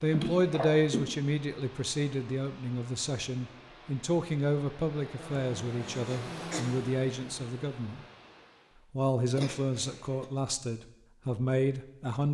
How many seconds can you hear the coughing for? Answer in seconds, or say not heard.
3 s.